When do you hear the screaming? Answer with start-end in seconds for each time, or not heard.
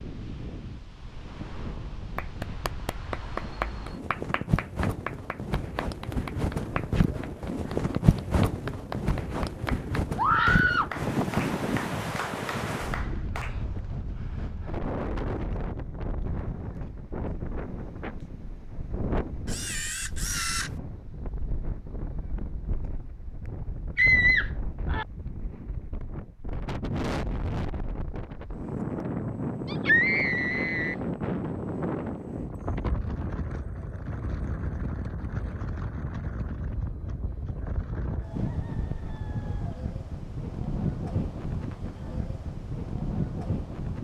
10.2-10.9, 23.9-25.1, 29.6-30.9.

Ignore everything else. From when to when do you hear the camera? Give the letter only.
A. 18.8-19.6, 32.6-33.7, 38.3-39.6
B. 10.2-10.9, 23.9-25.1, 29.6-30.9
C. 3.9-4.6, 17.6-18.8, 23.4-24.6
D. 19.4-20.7
D.